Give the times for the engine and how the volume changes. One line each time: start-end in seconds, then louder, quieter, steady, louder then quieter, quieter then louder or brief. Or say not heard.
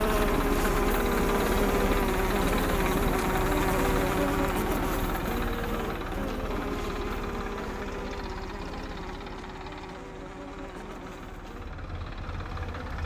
0.0-13.0 quieter.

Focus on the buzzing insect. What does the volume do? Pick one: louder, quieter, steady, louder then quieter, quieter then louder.
quieter.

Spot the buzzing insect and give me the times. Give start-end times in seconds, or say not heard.
0.0-13.0.